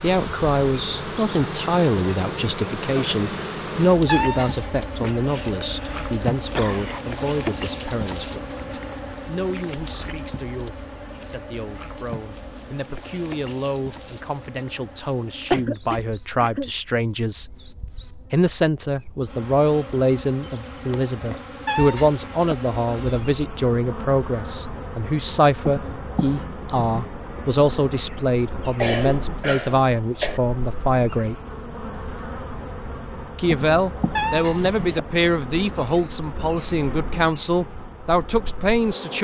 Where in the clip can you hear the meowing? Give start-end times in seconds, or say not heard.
4.0-4.8, 21.6-22.6, 34.1-35.0.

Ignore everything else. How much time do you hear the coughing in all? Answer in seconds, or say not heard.
5 s.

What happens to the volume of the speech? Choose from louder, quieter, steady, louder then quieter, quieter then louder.
quieter then louder.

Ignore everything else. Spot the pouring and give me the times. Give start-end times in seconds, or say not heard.
not heard.